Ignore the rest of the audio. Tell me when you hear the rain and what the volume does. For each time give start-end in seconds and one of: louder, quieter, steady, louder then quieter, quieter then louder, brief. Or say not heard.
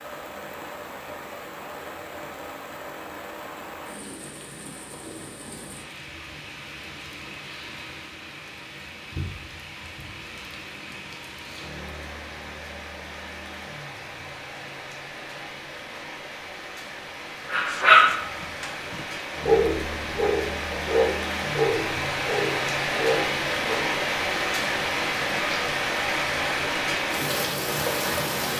0.0-28.5 louder.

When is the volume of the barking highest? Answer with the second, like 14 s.
18 s.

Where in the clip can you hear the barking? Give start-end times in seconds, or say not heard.
17.5-23.9.